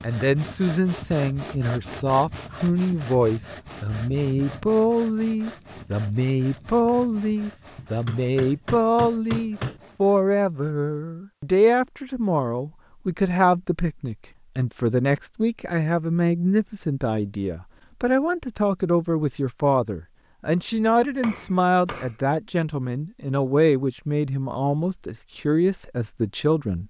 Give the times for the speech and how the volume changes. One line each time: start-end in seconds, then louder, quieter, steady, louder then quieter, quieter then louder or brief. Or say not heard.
0.0-26.8 steady.